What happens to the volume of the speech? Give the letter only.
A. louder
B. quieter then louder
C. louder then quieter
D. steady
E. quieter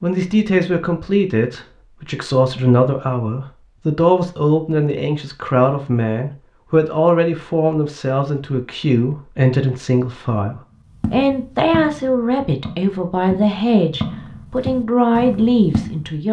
D.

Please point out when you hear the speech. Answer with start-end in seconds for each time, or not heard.
0.0-16.2.